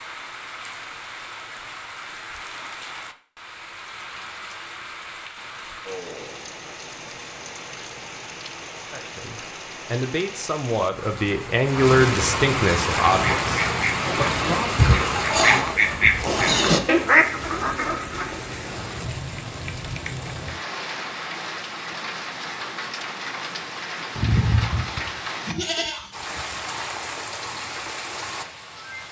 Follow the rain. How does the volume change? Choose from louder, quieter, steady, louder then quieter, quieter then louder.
louder then quieter.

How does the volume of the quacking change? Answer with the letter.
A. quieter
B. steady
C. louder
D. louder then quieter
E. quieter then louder
C.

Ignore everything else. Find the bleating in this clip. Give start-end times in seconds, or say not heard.
24.1-26.9.